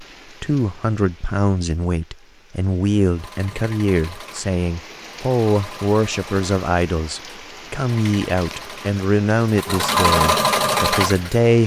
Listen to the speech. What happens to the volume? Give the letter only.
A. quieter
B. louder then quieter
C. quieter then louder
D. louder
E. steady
E.